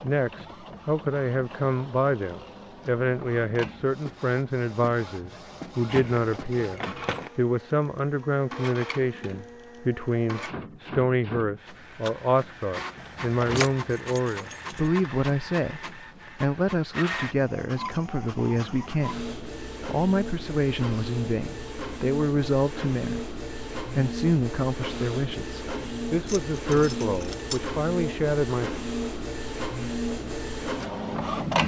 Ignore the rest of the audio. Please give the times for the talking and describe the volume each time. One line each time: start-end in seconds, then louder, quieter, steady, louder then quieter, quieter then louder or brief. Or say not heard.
0.0-28.8 steady.